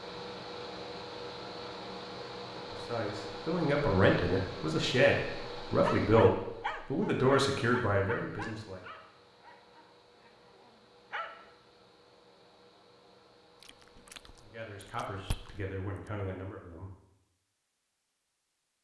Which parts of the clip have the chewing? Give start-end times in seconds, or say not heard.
13.6-16.1.